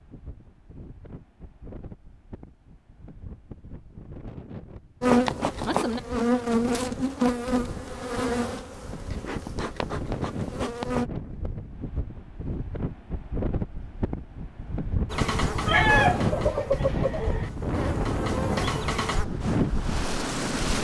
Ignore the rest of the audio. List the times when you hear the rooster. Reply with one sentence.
The rooster can be heard from 15.7 to 17.5 s.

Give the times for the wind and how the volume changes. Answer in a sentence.
The wind can be heard from 0.0 to 20.7 s, getting louder.